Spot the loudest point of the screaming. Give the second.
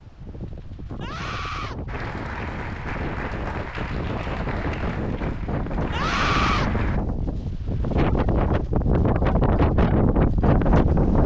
6 s.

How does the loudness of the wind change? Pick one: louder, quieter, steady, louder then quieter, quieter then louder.
louder.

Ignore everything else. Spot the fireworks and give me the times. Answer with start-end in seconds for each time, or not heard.
not heard.